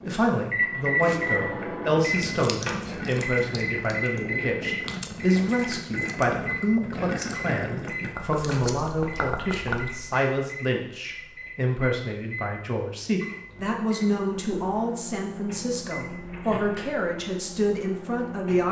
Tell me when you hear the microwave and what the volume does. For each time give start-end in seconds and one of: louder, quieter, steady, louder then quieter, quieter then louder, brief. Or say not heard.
0.0-18.6 quieter.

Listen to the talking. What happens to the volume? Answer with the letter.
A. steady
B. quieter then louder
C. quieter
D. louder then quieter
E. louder
A.